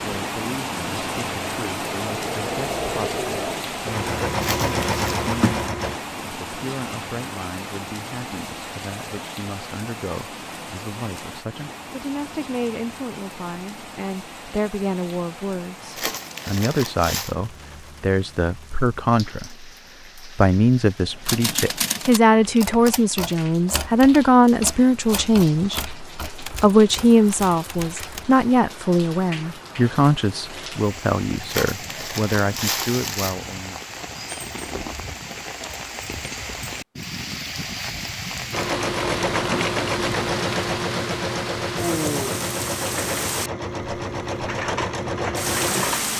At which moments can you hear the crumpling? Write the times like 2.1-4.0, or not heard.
4.4-5.0, 15.9-17.4, 31.4-33.4.